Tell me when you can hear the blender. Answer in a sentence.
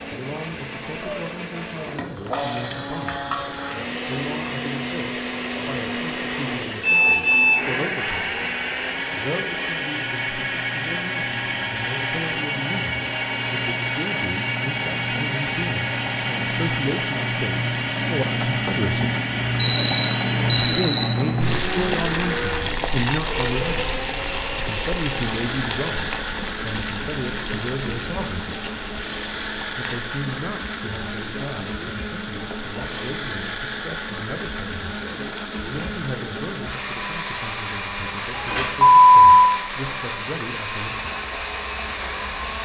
The blender can be heard from 0.0 to 42.6 s.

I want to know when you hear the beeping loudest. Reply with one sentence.
The volume of the beeping peaks at 39 seconds.